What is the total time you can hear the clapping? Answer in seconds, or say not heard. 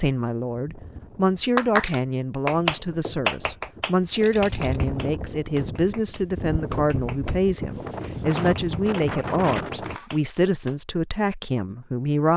9 s.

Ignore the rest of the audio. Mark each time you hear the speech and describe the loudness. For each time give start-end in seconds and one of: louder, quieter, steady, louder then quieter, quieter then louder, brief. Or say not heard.
0.0-12.3 steady.